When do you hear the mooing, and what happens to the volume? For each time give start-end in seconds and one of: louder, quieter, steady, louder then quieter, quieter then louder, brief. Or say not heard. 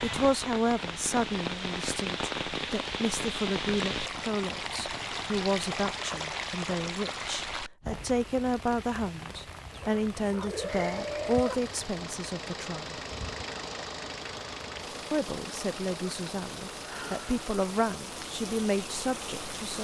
not heard.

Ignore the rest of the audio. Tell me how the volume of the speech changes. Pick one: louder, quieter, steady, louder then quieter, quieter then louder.
steady.